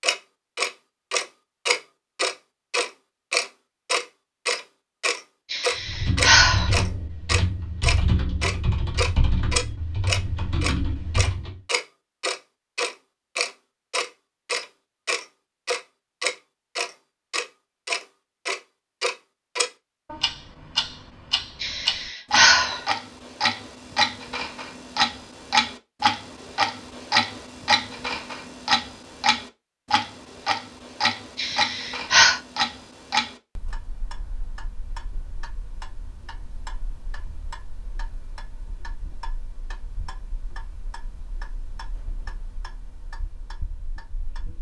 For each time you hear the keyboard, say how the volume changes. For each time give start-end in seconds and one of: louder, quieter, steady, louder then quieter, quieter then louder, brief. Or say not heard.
5.8-11.6 steady.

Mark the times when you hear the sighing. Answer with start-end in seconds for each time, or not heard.
5.5-6.7, 21.6-22.8, 31.4-32.4.